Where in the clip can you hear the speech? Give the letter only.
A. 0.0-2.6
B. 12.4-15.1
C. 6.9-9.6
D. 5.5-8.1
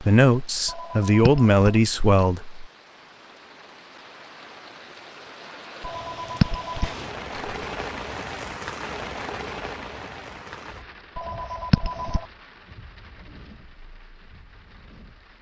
A.